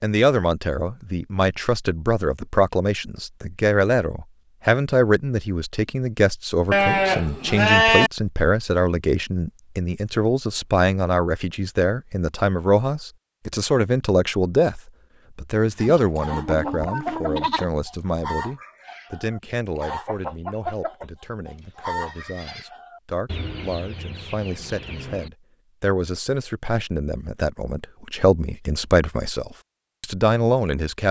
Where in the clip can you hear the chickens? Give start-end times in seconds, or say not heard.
15.8-25.3.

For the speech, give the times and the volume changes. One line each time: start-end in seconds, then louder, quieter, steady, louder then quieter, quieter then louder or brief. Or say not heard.
0.0-31.0 quieter then louder.